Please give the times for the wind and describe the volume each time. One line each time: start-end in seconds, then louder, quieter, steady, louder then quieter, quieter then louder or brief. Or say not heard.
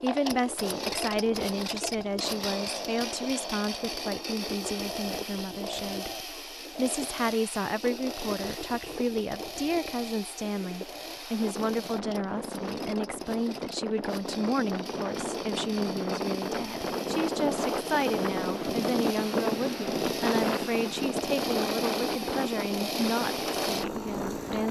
0.0-24.6 louder.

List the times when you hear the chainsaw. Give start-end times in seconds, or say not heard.
0.0-24.6.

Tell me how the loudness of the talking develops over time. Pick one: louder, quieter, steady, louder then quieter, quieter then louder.
steady.